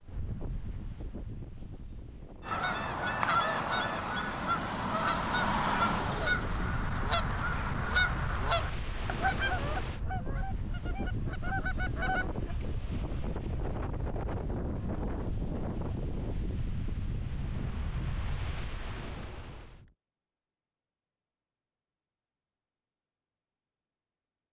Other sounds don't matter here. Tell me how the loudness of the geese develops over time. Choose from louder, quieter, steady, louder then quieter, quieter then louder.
quieter.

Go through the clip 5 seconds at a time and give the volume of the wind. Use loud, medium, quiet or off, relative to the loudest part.
medium, loud, loud, loud, off.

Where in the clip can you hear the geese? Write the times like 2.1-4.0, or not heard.
2.5-12.3.